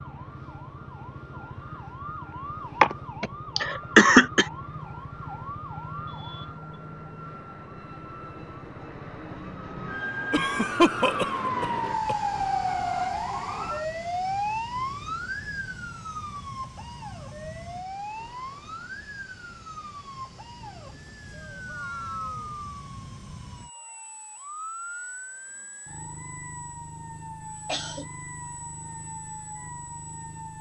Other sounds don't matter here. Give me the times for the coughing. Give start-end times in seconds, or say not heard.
2.8-4.5, 10.3-12.2, 27.6-28.1.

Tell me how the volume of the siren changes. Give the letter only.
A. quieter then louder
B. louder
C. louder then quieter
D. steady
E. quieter
C.